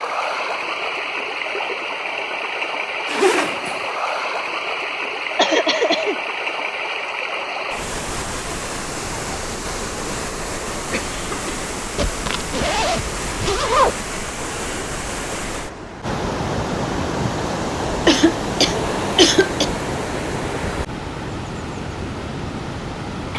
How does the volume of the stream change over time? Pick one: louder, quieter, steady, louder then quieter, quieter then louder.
steady.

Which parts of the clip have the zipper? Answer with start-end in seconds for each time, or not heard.
3.0-3.9, 11.9-13.9, 18.8-19.2.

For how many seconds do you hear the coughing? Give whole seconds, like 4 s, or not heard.
3 s.